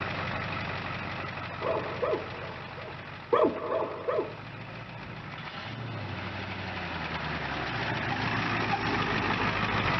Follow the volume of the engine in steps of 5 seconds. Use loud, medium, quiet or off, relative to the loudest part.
medium, loud.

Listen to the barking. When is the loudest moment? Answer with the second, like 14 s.
3 s.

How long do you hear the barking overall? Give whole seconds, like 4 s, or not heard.
3 s.